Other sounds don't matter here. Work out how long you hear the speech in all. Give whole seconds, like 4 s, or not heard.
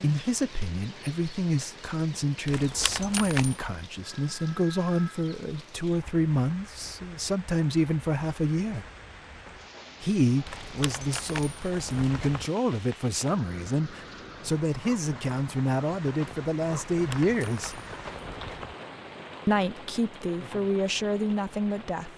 19 s.